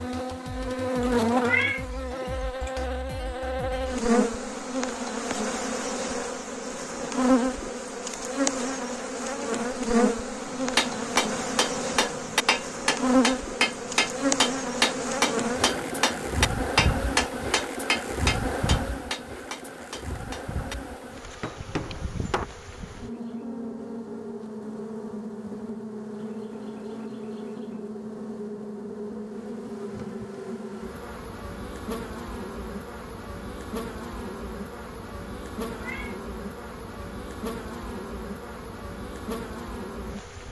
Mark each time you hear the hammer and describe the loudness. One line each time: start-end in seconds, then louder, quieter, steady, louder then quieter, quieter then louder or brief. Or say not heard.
10.4-22.4 quieter.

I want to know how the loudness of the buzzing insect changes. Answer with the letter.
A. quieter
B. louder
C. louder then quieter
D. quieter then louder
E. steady
A.